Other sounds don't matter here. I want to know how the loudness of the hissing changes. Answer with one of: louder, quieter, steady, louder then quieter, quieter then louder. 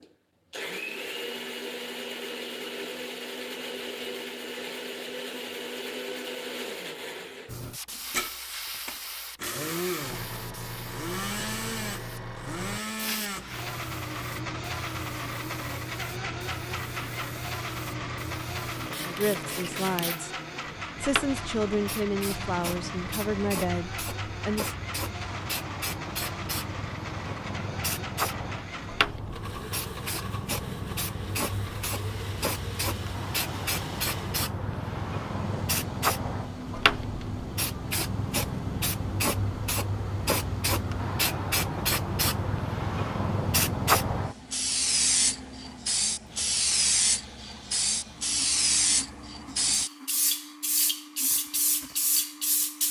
louder.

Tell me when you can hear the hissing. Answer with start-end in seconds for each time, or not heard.
7.5-52.8.